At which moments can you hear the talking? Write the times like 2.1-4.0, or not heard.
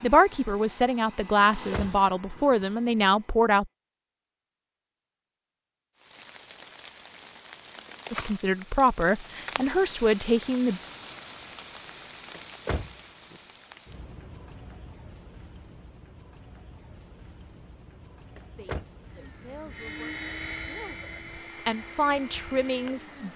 0.0-3.7, 8.1-10.8, 18.6-23.3.